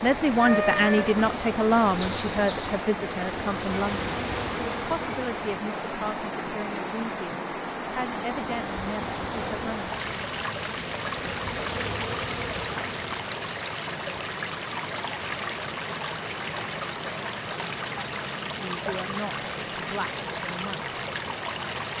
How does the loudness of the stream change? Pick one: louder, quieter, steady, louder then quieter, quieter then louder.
steady.